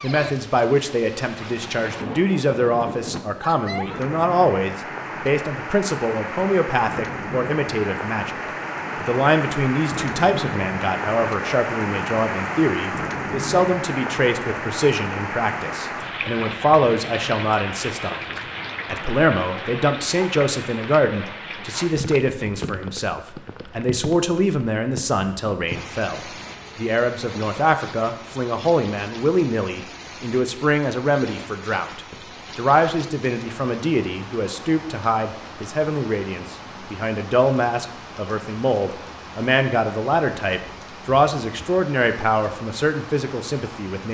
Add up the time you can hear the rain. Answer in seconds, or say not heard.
44 s.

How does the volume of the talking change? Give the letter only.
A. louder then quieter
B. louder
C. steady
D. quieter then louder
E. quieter
C.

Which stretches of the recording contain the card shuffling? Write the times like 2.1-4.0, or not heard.
not heard.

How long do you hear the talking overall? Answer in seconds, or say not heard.
43 s.